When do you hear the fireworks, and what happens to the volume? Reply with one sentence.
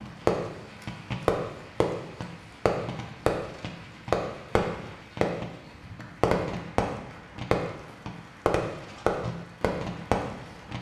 You can hear the fireworks from 0.0 to 10.7 s, at a steady volume.